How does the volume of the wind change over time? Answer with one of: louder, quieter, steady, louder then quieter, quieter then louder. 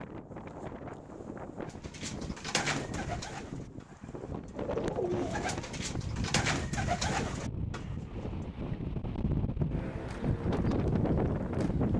louder.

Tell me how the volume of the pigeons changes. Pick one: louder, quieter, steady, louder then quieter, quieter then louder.
quieter then louder.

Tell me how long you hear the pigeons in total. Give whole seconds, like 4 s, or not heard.
7 s.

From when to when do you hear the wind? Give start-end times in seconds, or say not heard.
0.0-11.9.